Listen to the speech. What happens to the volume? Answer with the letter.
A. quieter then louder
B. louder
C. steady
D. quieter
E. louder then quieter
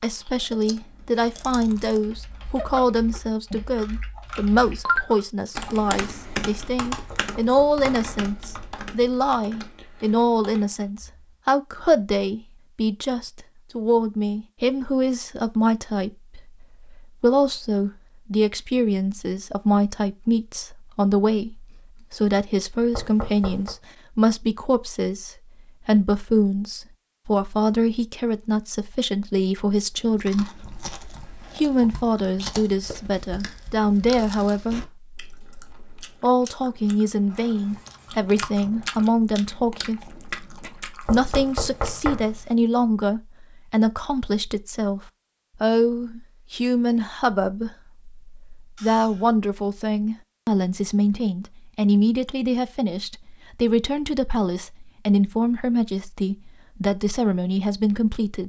C.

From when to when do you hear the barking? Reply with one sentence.
The barking can't be heard in this clip.